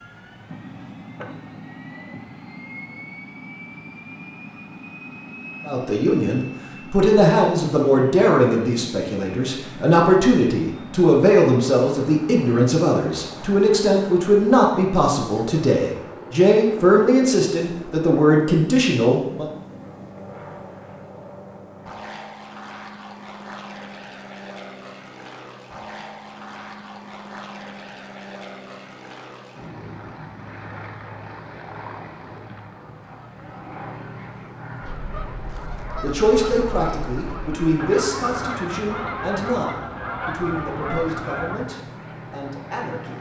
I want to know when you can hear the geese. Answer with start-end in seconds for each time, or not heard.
34.8-41.6.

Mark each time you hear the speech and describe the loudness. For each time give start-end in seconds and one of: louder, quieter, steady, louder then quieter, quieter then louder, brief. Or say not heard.
5.7-19.4 steady
36.0-43.1 quieter.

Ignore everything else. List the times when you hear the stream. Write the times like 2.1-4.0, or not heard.
not heard.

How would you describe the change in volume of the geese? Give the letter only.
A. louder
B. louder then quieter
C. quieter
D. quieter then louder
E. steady
A.